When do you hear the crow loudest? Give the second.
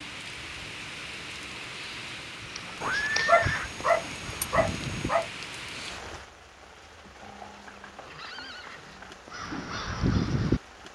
10 s.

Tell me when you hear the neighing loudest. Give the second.
3 s.